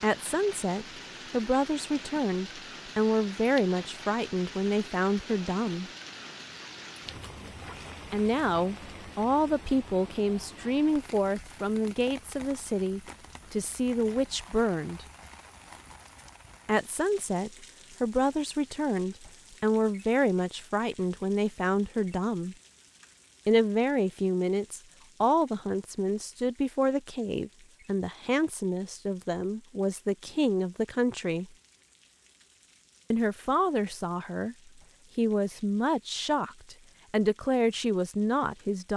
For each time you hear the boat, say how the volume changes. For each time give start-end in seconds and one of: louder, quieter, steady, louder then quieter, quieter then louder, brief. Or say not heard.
not heard.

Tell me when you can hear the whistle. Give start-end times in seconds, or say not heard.
not heard.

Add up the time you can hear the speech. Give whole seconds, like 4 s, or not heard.
32 s.